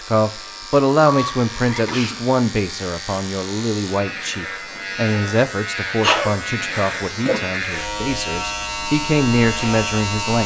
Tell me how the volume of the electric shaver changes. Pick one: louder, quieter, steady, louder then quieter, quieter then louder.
louder.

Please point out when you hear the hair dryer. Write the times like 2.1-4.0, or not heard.
not heard.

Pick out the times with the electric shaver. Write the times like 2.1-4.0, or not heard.
0.0-10.4.